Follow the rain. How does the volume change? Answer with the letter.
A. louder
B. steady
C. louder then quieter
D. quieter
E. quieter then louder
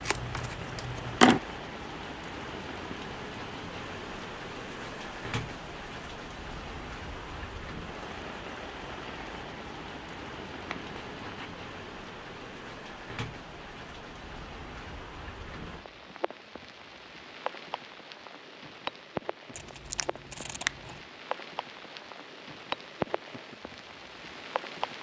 B.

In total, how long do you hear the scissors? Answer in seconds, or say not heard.
4 s.